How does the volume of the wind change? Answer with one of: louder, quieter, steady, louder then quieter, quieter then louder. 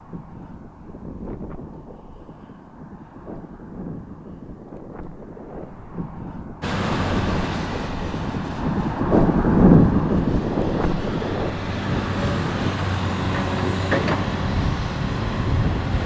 louder then quieter.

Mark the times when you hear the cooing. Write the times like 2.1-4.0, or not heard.
not heard.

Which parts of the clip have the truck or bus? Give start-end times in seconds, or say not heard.
6.6-16.0.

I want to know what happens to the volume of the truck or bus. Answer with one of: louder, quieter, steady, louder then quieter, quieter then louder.
quieter then louder.